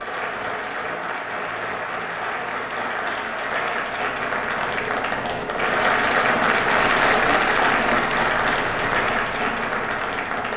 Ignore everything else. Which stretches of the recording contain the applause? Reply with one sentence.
The applause can be heard from 0.0 to 10.5 s.